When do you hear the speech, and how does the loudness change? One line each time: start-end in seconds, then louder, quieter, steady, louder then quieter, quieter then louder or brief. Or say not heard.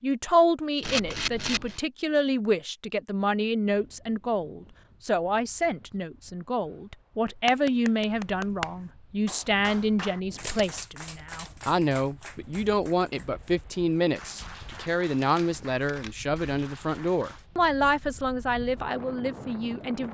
0.0-20.1 steady.